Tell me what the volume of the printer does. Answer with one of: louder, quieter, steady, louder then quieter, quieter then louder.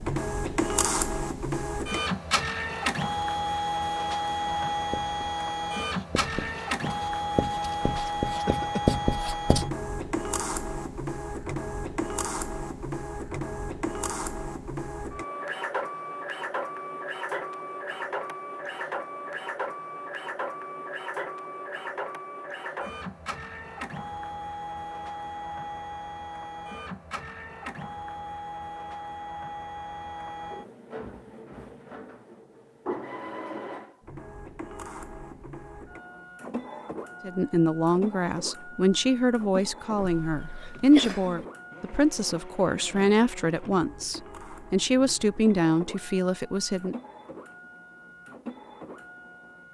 quieter.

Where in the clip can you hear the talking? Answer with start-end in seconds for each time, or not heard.
37.2-47.0.